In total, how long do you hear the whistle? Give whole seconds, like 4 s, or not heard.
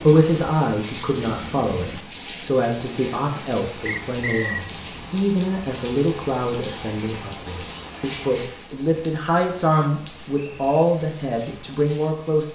2 s.